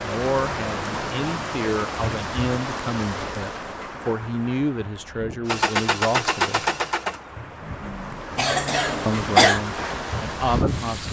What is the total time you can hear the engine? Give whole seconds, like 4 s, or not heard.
4 s.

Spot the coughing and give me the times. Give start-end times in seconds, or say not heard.
8.3-9.6.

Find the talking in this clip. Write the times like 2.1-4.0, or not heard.
0.0-6.7, 9.1-11.0.